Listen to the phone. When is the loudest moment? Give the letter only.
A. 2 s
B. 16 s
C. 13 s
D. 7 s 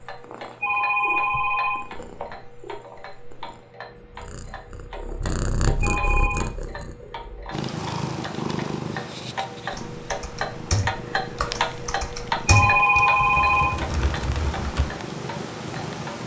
C.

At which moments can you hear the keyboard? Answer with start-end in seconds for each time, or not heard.
9.7-14.9.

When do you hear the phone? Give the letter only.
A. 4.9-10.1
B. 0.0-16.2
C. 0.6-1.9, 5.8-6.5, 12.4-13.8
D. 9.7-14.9
C.